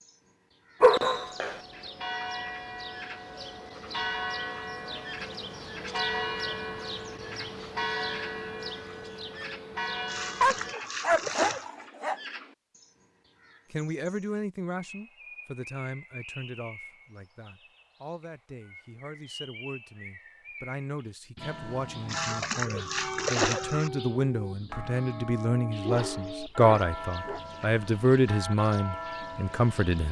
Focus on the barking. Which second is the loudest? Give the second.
1 s.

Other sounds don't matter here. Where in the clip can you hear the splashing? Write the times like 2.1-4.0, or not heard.
10.1-11.7, 22.1-23.9.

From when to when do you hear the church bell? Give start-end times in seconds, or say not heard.
0.8-10.8, 21.4-30.0.